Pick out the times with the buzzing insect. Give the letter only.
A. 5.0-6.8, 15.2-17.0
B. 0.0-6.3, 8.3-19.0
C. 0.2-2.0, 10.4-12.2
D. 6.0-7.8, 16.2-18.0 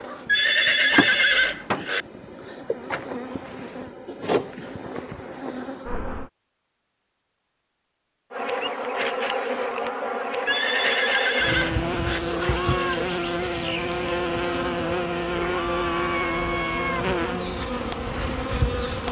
B.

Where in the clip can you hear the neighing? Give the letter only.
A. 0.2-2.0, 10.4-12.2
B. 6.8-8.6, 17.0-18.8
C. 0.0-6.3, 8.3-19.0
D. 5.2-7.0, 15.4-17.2
A.